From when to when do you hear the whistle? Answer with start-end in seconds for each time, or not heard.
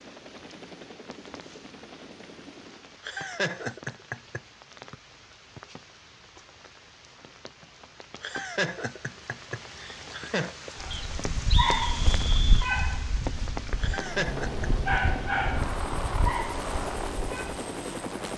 4.9-5.6, 10.9-12.7.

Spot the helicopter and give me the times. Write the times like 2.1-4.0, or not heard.
0.0-3.0, 13.8-18.3.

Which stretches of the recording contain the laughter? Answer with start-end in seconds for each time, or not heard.
3.0-4.4, 8.2-10.6, 13.8-14.7.